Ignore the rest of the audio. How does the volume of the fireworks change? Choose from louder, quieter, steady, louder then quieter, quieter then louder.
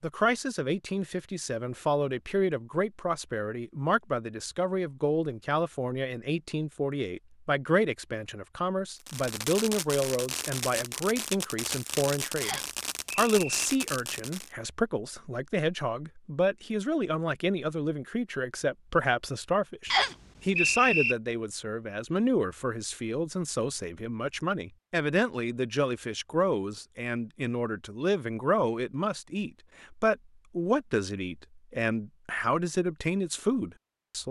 steady.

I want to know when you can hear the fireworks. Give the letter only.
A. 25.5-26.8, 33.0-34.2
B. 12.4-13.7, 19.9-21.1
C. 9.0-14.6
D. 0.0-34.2
C.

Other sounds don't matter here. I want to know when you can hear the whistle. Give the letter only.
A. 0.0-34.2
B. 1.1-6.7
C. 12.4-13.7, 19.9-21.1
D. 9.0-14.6
C.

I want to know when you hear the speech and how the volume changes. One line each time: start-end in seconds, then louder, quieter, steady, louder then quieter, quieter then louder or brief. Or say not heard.
0.0-34.2 steady.